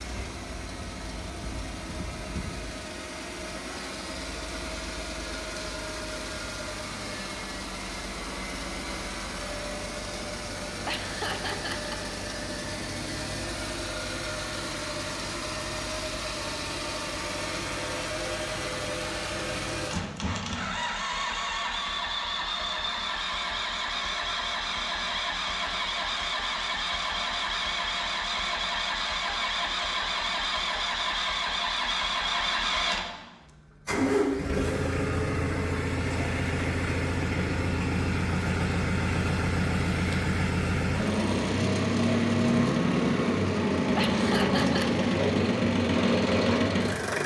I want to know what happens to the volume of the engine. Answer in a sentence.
The loudness of the engine goes up.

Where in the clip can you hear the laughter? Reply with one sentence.
You can hear the laughter from 10.8 to 12.1 s and from 44.0 to 45.0 s.